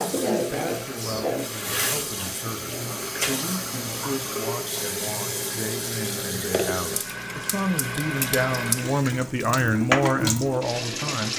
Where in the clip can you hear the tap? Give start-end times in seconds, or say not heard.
0.0-11.3.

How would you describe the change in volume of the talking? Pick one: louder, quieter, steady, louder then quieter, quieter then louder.
louder.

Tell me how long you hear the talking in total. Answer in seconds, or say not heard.
11 s.